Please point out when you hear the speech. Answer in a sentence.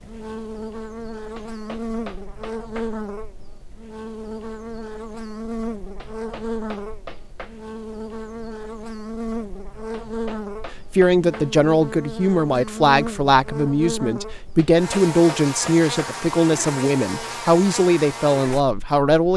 You can hear the speech from 10.9 to 19.3 s.